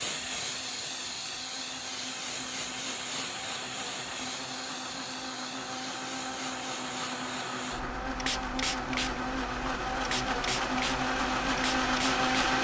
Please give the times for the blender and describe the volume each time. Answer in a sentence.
The blender can be heard from 0.0 to 12.5 s, getting louder.